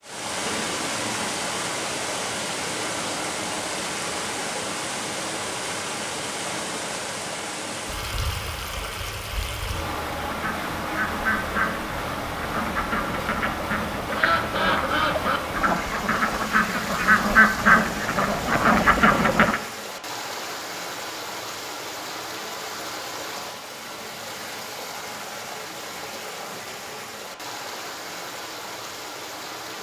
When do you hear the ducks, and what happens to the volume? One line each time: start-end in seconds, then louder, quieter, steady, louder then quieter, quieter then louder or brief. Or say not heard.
10.2-19.6 louder.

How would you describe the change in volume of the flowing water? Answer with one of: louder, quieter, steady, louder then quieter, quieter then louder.
quieter.